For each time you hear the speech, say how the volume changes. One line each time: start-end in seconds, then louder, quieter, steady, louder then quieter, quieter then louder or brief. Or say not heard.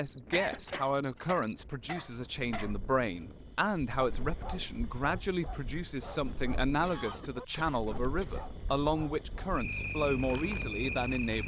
0.0-11.4 steady.